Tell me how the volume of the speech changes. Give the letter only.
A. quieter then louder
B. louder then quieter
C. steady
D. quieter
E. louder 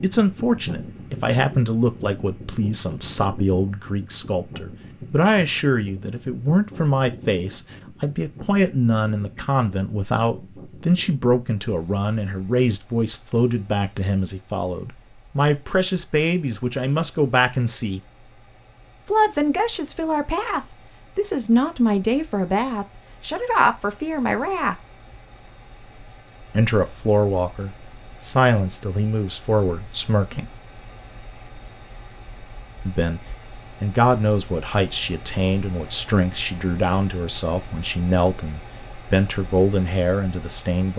C.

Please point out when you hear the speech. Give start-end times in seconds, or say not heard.
0.0-18.0, 19.1-24.8, 26.5-30.4, 32.9-40.9.